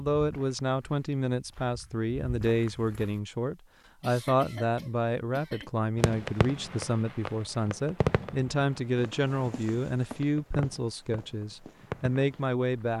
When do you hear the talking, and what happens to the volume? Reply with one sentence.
The talking can be heard from 0.0 to 12.9 s, at a steady volume.